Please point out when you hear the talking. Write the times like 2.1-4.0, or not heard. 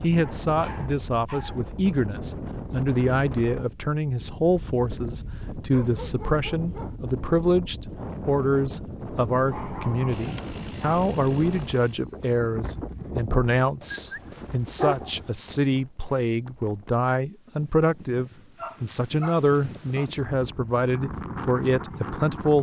0.0-22.5.